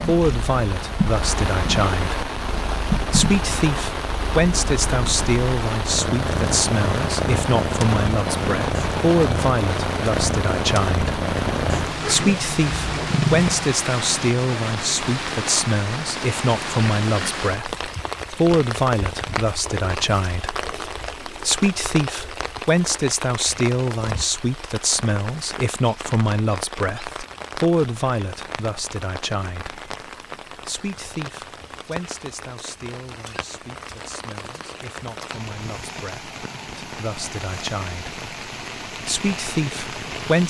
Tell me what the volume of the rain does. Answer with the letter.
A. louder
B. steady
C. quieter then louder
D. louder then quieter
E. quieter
E.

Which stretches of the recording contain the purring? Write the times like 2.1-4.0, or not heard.
0.0-13.8.